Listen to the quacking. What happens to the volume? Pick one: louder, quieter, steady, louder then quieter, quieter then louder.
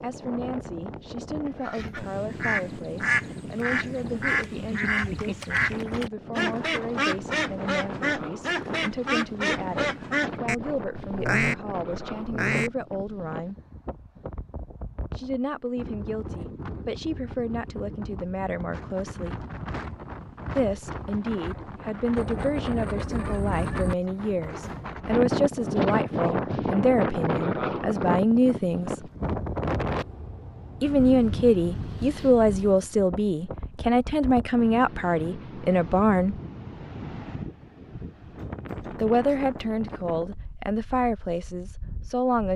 steady.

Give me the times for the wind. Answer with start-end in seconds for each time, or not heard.
0.0-42.5.